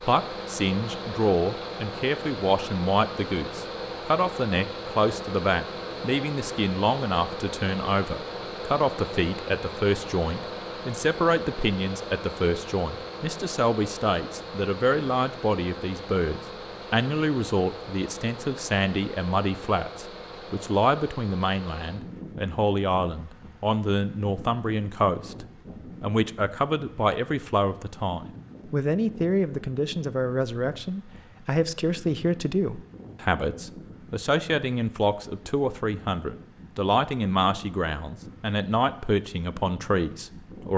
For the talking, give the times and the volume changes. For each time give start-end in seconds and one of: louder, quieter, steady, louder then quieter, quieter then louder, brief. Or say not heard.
0.0-40.7 steady.